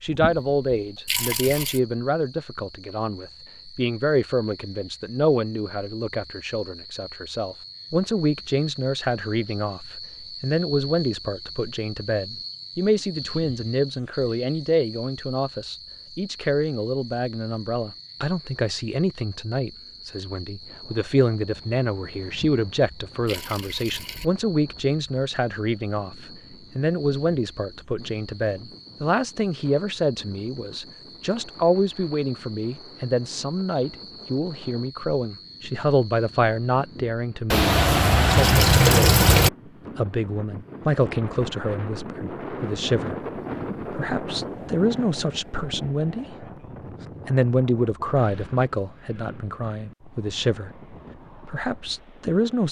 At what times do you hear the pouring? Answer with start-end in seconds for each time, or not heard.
0.1-1.8, 22.2-24.2, 37.5-39.5.